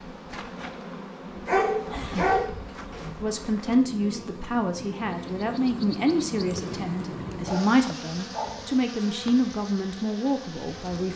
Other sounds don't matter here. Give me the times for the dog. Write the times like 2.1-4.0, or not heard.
1.4-3.2, 7.5-8.8.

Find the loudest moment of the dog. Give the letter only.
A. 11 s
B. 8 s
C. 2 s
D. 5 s
C.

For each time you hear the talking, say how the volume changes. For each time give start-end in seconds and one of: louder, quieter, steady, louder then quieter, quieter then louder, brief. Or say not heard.
3.2-11.1 steady.